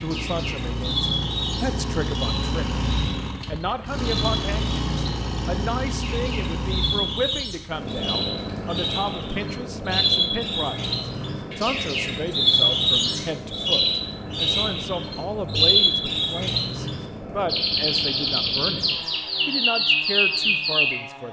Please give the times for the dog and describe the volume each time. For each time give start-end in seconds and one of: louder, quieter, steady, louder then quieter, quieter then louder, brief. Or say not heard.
not heard.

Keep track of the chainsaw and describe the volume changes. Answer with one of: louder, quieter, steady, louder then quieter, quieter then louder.
quieter.